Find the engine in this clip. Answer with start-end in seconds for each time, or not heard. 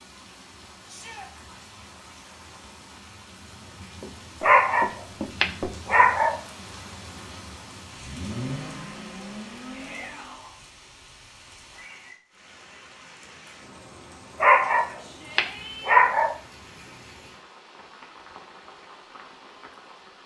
7.8-10.5.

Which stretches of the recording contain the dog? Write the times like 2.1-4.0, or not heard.
4.4-6.4, 14.4-16.4.